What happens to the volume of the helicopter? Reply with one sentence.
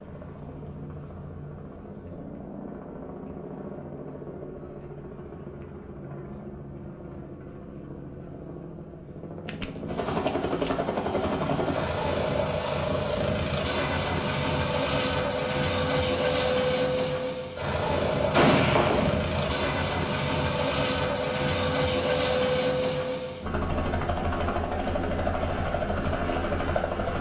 The loudness of the helicopter goes up.